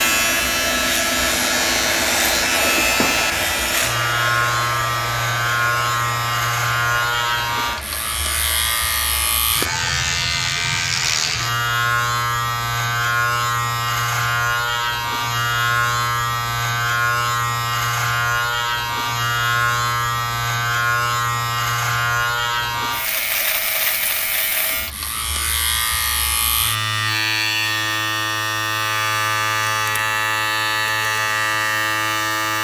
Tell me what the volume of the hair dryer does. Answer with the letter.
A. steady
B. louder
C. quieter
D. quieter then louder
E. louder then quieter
C.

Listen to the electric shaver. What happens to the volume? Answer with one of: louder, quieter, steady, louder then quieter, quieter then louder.
steady.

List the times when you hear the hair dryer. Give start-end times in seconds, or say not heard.
0.0-9.4.